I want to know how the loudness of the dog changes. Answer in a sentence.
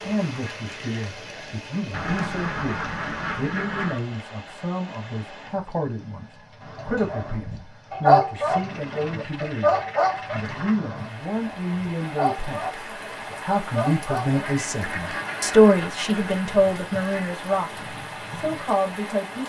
The loudness of the dog goes down.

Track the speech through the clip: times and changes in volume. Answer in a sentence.
You can hear the speech from 0.0 to 19.4 s, getting louder.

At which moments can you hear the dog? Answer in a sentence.
The dog can be heard from 6.8 to 14.4 s.